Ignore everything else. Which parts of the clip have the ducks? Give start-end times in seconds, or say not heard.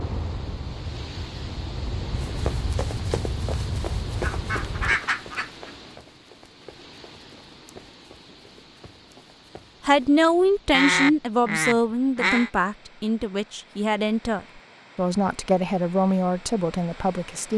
4.2-5.7, 10.7-12.5.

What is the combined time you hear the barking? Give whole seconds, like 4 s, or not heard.
not heard.